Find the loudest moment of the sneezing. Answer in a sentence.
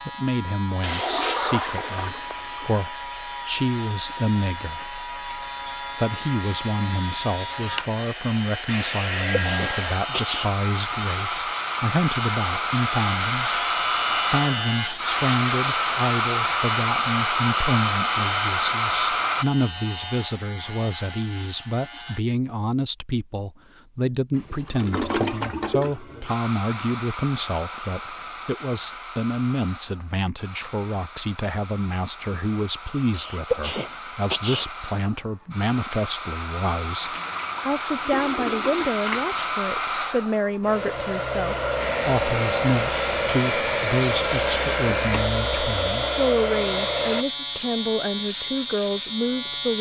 The loudest moment of the sneezing is at 34 seconds.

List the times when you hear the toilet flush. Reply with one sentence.
You can hear the toilet flush from 0.8 to 2.7 s, from 24.4 to 26.4 s and from 37.0 to 39.5 s.